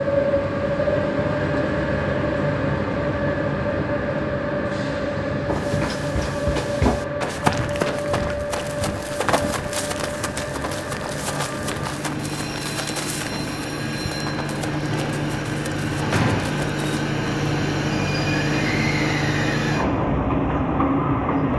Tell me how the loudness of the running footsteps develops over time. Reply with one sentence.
The volume of the running footsteps goes down.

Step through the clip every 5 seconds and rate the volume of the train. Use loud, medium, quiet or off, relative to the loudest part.
loud, medium, medium, loud, loud.